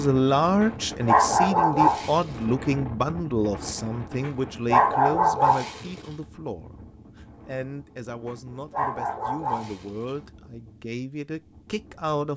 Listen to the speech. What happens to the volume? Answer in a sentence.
The loudness of the speech goes down.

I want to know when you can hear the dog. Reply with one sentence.
You can hear the dog from 0.6 to 2.3 s, from 4.2 to 6.0 s and from 8.2 to 10.1 s.